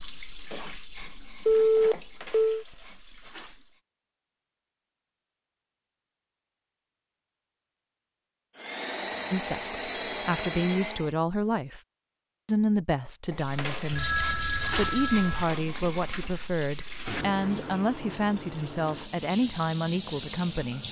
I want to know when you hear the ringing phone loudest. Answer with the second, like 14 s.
2 s.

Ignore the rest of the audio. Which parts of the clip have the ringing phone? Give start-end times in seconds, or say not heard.
1.4-2.6, 9.1-10.8, 13.9-15.4.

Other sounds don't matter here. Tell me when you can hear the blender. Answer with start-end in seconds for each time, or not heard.
8.6-11.2.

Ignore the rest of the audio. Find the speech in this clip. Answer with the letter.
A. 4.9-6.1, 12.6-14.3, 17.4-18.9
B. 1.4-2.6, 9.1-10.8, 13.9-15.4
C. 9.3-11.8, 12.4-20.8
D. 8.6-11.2
C.